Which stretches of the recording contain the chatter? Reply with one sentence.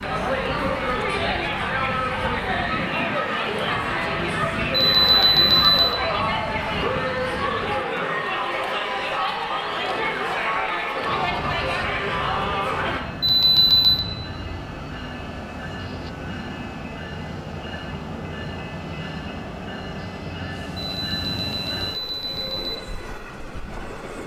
You can hear the chatter from 0.0 to 13.0 s.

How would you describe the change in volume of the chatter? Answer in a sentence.
The volume of the chatter stays about the same.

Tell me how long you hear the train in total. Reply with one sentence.
The train can be heard for 21 seconds in total.